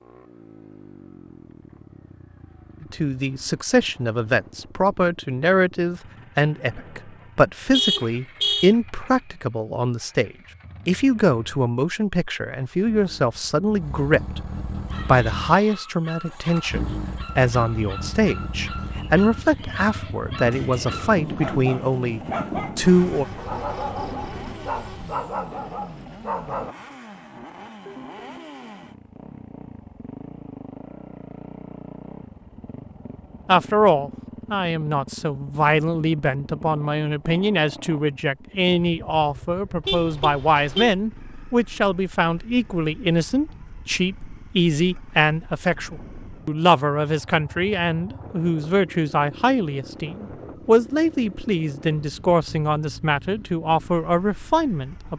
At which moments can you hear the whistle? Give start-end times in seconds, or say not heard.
not heard.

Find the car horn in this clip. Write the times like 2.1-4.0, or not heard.
7.7-8.8, 23.1-25.2, 39.9-40.9.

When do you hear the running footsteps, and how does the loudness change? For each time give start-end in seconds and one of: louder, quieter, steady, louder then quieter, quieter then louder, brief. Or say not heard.
not heard.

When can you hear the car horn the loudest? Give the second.
8 s.